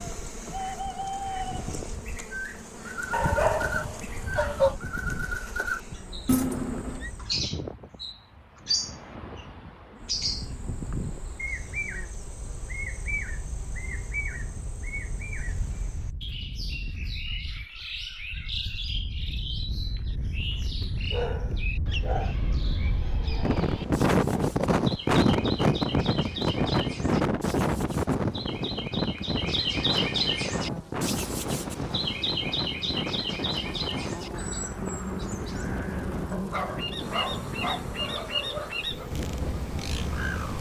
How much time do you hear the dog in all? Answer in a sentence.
The dog can be heard for 6 seconds in total.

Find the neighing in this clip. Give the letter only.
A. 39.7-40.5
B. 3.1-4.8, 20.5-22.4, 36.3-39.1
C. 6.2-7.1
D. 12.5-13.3
C.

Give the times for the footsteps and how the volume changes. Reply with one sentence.
You can't hear the footsteps here.